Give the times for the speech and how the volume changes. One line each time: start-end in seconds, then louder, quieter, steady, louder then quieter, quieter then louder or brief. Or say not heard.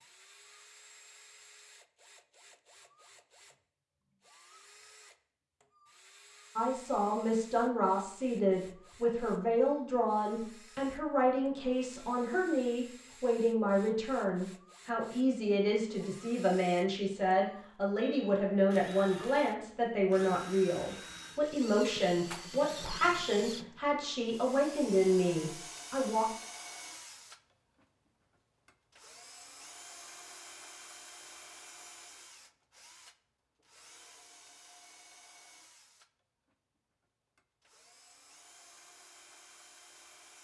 6.5-26.2 steady.